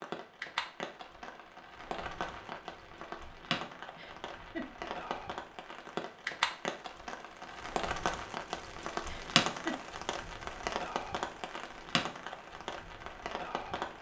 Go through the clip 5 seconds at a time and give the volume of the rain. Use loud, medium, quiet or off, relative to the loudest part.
medium, loud, loud.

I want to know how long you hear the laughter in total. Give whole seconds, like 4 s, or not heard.
2 s.